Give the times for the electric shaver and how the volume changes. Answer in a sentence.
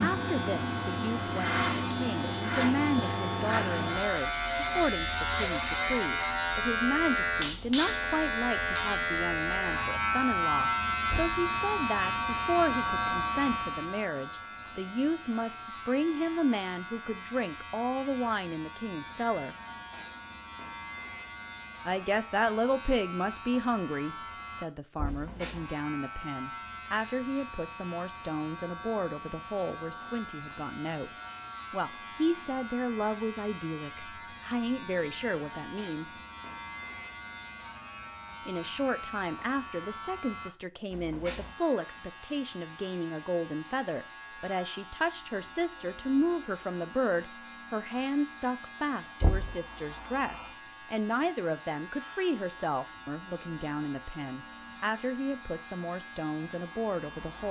The electric shaver can be heard from 0.0 to 57.4 s, getting quieter.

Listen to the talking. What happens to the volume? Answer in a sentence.
The loudness of the talking stays about the same.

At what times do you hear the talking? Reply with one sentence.
You can hear the talking from 0.0 to 19.6 s, from 21.9 to 31.1 s, from 31.7 to 36.1 s and from 38.5 to 57.4 s.